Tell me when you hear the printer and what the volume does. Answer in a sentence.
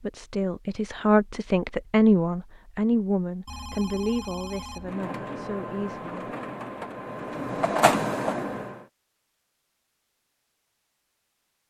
You can hear the printer from 4.8 to 8.8 s, getting louder.